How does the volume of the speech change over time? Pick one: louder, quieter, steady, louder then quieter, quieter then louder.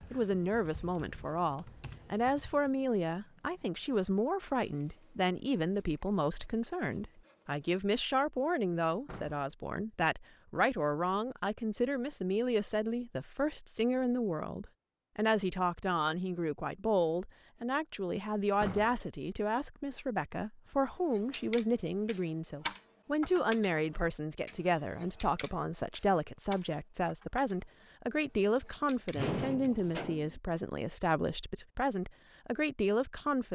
steady.